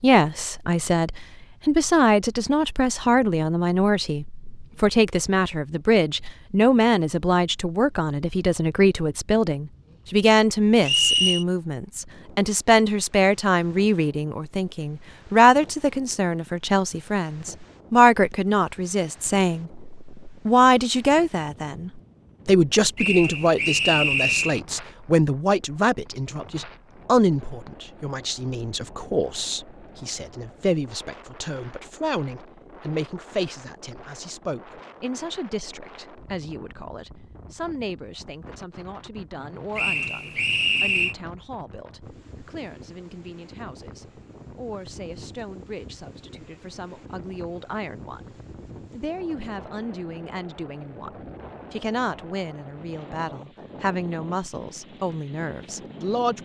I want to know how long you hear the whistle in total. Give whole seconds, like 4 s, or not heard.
4 s.